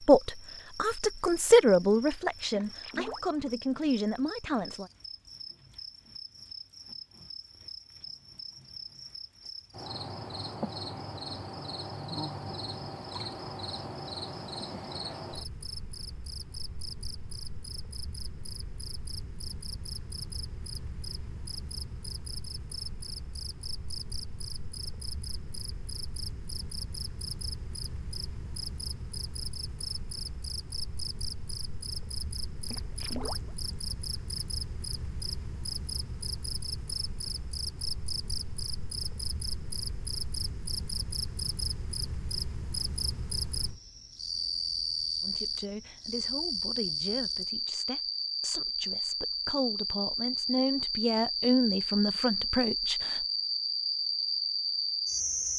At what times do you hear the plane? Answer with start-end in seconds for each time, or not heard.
not heard.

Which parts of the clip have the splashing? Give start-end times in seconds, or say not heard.
2.5-3.8, 32.6-33.8.